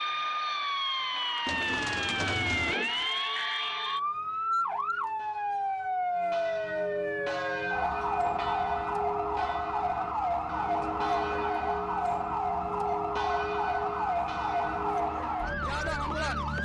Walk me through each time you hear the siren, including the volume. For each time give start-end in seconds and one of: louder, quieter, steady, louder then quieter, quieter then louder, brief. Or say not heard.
0.0-16.6 steady.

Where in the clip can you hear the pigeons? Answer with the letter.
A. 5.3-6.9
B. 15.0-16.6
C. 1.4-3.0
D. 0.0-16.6
C.